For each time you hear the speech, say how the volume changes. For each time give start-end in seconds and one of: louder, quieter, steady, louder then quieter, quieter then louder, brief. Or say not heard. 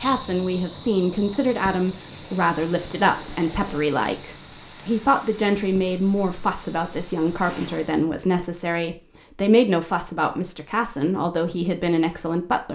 0.0-12.7 steady.